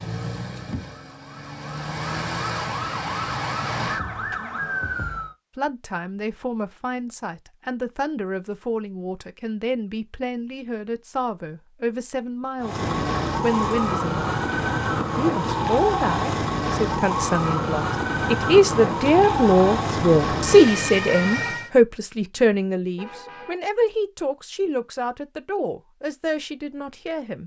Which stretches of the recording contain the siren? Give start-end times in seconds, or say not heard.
0.0-5.3, 12.6-21.7.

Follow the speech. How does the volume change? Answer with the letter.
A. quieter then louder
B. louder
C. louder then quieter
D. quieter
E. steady
C.